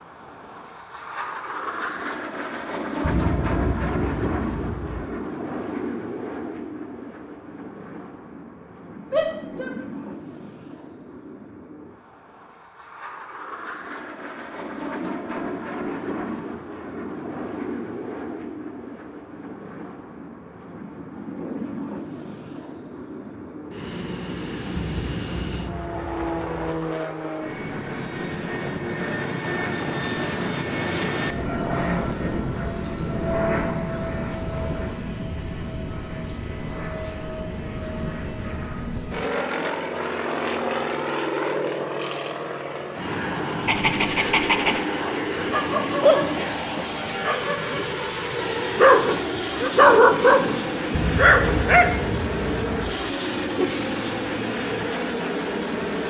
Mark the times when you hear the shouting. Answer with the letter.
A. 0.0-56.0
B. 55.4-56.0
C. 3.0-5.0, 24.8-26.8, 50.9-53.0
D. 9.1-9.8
D.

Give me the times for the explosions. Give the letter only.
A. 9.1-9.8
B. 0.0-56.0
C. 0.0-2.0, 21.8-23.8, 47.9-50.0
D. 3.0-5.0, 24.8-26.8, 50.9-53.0
D.